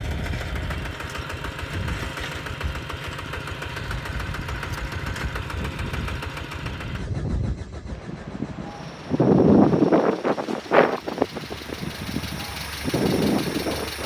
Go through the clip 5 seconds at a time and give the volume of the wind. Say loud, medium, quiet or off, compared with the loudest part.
quiet, loud, loud.